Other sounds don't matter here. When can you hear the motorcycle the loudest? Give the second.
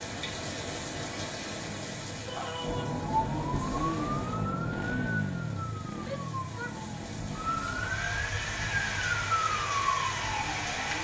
5 s.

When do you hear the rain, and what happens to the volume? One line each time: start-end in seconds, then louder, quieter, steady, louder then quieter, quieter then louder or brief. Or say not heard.
0.0-11.0 quieter then louder.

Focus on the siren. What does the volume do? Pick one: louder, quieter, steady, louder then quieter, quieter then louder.
quieter then louder.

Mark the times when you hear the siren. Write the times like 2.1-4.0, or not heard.
2.5-11.0.